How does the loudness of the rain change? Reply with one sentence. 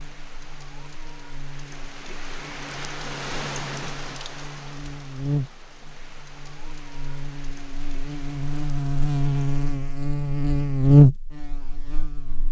The volume of the rain goes up, then down.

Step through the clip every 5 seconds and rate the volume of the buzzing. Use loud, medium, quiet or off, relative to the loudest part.
quiet, medium, loud.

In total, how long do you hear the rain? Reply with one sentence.
You can hear the rain for 10 seconds altogether.